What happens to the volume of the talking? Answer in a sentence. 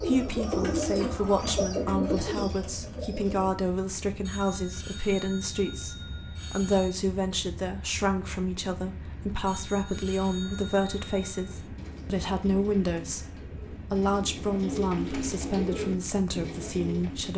The volume of the talking stays about the same.